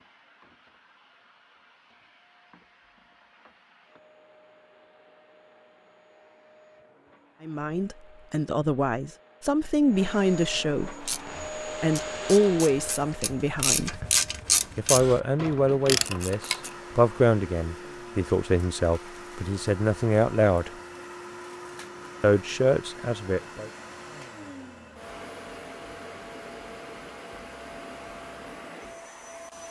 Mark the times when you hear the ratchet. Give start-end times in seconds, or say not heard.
11.0-16.8.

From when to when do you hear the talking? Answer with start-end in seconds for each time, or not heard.
7.4-11.1, 11.8-13.9, 14.8-20.7, 22.2-23.7.